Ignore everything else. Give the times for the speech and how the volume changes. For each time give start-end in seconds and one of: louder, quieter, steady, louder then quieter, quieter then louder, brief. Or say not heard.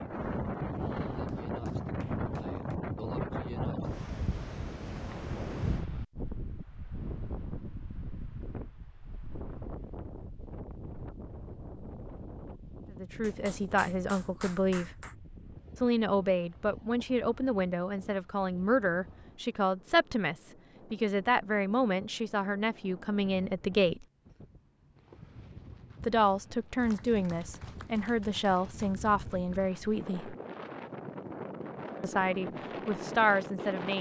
12.9-14.9 brief
15.8-24.1 steady
26.0-30.4 steady
32.0-33.9 brief.